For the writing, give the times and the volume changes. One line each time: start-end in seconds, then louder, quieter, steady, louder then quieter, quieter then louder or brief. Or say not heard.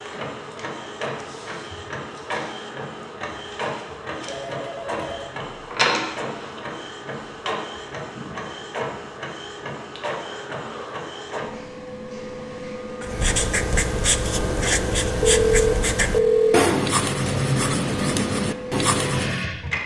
13.0-19.5 steady.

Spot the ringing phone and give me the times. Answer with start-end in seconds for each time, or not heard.
4.2-5.3, 15.2-16.7.